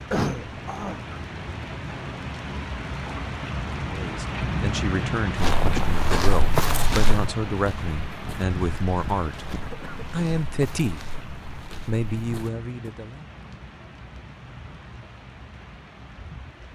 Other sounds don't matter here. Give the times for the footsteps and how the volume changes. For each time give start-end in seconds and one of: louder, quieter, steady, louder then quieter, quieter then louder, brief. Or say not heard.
5.3-12.9 quieter.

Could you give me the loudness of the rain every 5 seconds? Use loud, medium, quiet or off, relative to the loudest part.
loud, loud, medium, quiet.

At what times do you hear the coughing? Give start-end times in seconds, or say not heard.
0.1-1.0, 9.5-10.1.